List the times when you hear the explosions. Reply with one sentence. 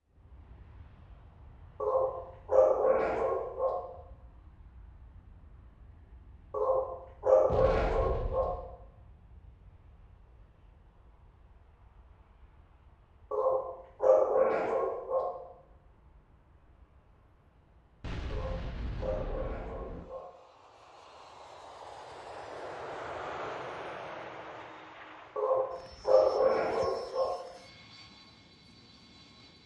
You can hear the explosions from 7.5 to 8.7 s and from 18.0 to 20.1 s.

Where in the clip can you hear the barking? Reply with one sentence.
You can hear the barking from 1.8 to 3.8 s, from 6.5 to 8.5 s, from 13.3 to 15.3 s, from 18.3 to 20.3 s and from 25.4 to 27.4 s.